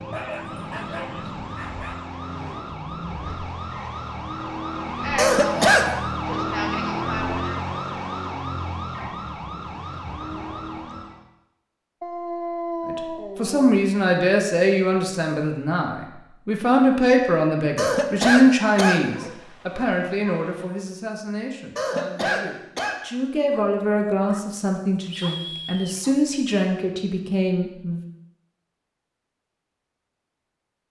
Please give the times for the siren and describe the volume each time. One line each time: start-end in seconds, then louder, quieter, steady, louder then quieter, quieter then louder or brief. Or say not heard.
0.0-11.2 louder then quieter.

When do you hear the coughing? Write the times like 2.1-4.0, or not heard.
5.2-5.9, 17.8-19.0, 21.8-22.9.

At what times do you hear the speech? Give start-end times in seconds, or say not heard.
12.8-28.0.